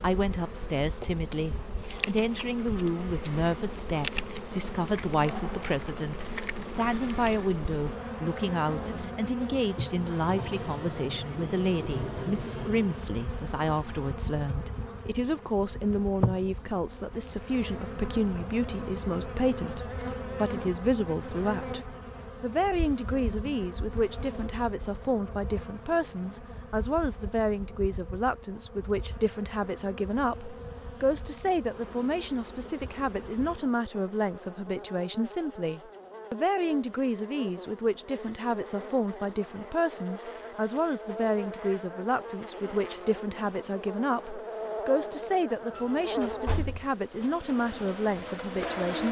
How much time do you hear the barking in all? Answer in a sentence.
You can't hear the barking here.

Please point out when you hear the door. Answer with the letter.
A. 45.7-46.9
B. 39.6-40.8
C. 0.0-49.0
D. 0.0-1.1
A.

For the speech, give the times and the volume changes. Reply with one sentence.
The speech can be heard from 0.0 to 49.0 s, at a steady volume.